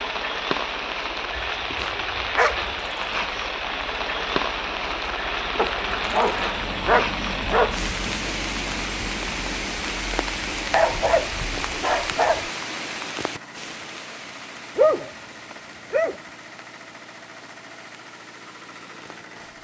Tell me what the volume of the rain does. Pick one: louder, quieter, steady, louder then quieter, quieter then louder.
quieter.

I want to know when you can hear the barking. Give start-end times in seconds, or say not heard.
1.4-2.8, 5.5-7.8, 10.7-12.5, 14.8-16.2.